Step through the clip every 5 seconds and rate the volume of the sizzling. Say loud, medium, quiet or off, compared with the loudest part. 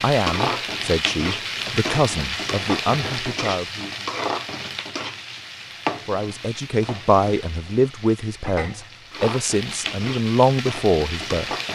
loud, medium, loud.